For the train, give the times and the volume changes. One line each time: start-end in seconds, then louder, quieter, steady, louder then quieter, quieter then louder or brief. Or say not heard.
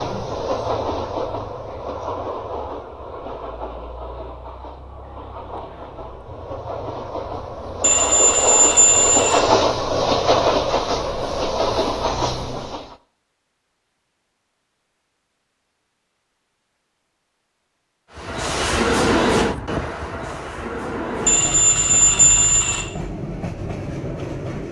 0.0-12.9 quieter then louder
18.1-24.6 quieter.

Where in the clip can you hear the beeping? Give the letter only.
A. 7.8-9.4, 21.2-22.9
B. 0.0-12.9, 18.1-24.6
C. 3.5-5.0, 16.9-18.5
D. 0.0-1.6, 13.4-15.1
A.